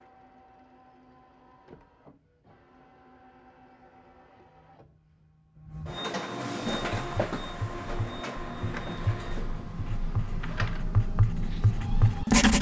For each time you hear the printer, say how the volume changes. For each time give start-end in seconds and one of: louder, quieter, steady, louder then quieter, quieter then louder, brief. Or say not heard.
0.0-12.4 louder then quieter.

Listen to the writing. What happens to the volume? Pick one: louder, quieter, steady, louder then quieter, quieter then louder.
louder.